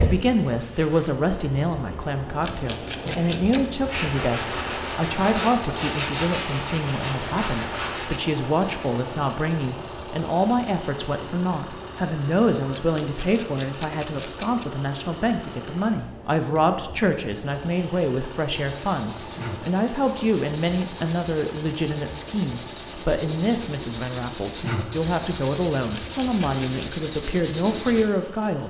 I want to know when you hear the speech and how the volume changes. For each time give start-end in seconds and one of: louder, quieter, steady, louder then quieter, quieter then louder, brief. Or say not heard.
0.0-28.6 steady.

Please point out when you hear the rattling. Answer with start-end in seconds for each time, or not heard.
2.4-3.6, 12.8-14.7, 25.9-26.9.